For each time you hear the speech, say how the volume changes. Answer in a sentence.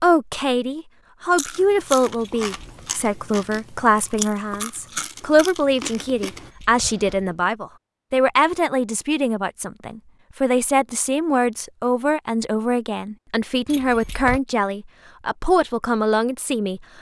The speech can be heard from 0.0 to 16.8 s, at a steady volume.